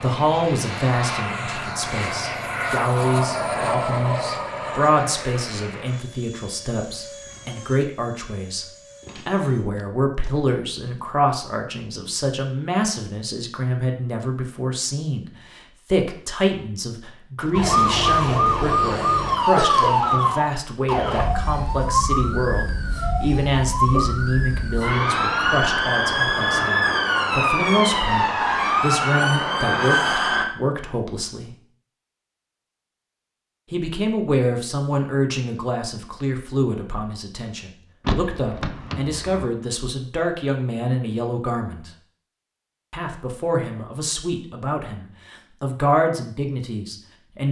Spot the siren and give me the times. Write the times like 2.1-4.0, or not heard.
17.5-30.4.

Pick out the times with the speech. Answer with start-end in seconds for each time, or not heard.
0.0-8.7, 9.2-31.6, 33.7-41.9, 42.9-47.4.